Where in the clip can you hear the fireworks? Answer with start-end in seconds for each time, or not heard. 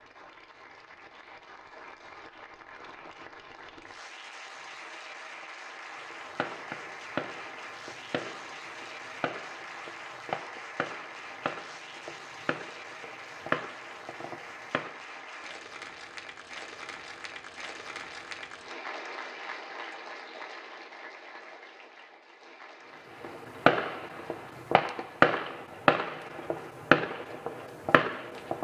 6.1-15.1, 23.2-28.5.